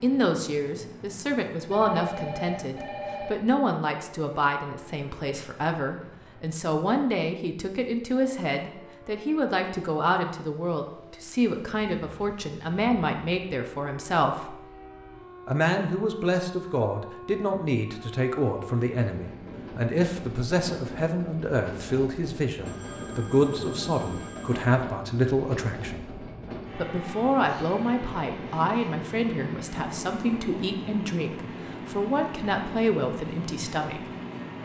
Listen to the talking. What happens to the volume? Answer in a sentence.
The loudness of the talking stays about the same.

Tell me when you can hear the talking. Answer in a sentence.
The talking can be heard from 0.0 to 14.6 s, from 15.4 to 26.1 s and from 26.8 to 34.0 s.